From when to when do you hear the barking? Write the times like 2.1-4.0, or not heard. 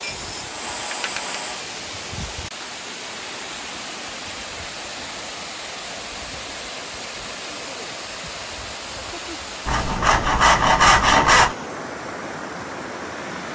not heard.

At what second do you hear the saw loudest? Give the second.
11 s.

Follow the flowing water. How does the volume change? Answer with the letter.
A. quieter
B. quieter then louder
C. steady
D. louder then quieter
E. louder
C.